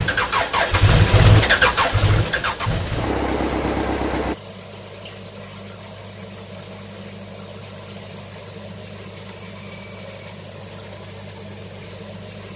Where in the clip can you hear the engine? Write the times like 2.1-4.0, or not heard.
0.0-4.3.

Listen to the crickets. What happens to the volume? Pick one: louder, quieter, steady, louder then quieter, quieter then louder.
steady.